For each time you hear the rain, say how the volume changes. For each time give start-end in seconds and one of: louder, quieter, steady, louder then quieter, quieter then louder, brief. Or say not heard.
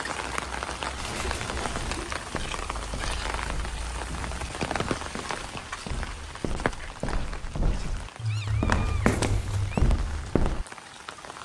0.0-11.4 quieter.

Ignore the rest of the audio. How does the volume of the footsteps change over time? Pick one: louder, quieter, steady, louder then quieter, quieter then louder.
louder.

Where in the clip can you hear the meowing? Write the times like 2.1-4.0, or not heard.
0.9-2.1, 8.2-9.8.